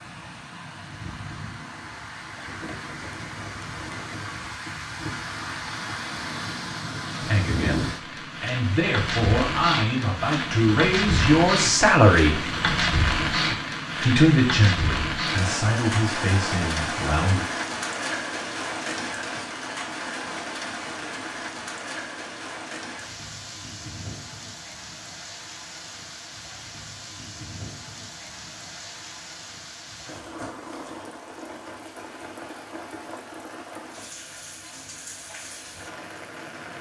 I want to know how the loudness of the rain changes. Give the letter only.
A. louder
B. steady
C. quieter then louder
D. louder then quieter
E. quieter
D.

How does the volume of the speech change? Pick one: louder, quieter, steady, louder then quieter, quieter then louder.
louder then quieter.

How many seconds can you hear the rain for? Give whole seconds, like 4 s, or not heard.
37 s.